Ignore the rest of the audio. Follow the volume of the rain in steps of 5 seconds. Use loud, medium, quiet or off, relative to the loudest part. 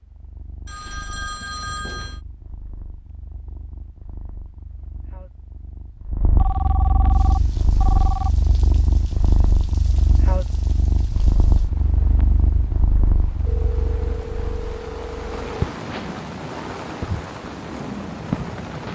off, quiet, quiet, loud.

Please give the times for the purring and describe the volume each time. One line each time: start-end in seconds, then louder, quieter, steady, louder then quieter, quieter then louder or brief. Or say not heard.
0.0-18.9 louder.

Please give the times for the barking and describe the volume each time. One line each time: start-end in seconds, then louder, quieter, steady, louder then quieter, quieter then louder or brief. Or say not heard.
not heard.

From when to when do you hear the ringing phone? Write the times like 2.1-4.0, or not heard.
0.7-2.2, 6.3-8.3, 13.4-15.7.